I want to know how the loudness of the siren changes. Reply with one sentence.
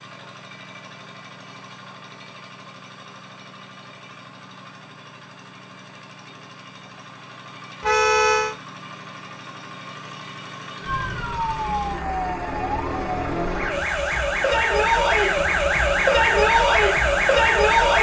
The loudness of the siren goes up.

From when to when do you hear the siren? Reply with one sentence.
The siren can be heard from 10.8 to 17.9 s.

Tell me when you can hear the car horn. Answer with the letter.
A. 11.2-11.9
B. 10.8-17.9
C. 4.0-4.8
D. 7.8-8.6
D.